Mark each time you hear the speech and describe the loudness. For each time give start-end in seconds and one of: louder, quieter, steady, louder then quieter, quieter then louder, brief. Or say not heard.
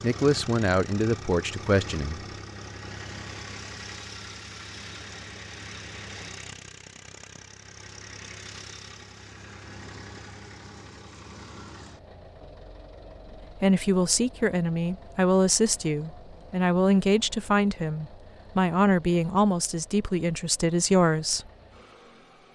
0.0-2.2 brief
13.6-21.4 steady.